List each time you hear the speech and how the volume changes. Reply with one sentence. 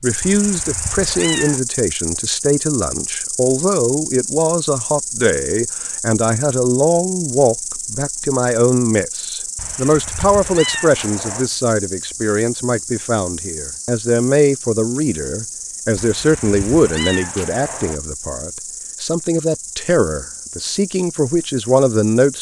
The speech can be heard from 0.0 to 22.3 s, at a steady volume.